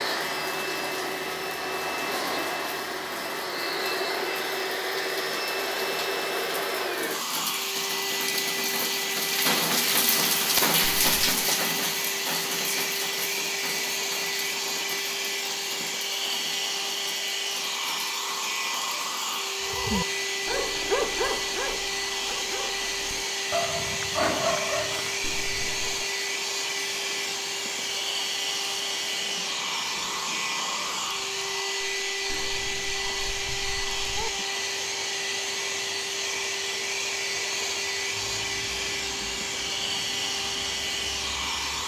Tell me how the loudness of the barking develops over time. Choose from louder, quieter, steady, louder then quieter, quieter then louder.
quieter then louder.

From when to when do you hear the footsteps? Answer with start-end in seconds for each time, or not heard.
not heard.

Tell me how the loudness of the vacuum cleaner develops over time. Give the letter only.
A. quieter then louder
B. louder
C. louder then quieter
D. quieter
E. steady
E.